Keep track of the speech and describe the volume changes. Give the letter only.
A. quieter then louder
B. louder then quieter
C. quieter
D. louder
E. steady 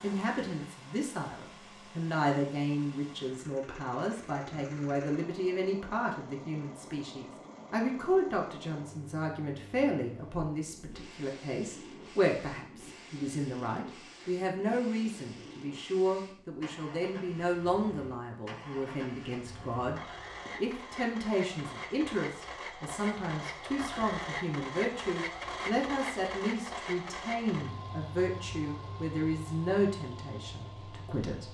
E.